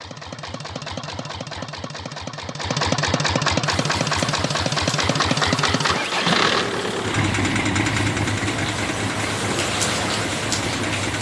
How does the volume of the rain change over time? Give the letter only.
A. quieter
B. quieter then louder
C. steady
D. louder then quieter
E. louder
E.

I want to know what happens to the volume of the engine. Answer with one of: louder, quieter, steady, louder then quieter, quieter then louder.
louder then quieter.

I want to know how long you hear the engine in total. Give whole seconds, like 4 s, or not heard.
11 s.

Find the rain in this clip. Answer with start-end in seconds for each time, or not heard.
3.6-11.1.